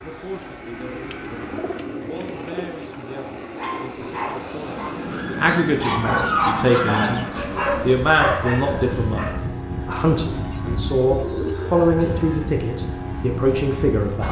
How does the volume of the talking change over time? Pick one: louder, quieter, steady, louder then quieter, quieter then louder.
louder.